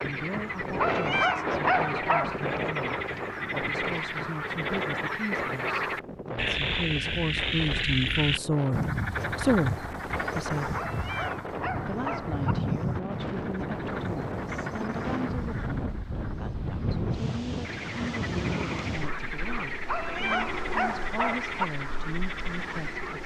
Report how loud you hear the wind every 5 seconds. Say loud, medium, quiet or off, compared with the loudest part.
loud, medium, loud, loud, medium.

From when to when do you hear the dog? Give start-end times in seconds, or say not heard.
0.8-2.4, 10.8-12.6, 19.9-21.6.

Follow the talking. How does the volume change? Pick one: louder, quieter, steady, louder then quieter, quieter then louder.
louder then quieter.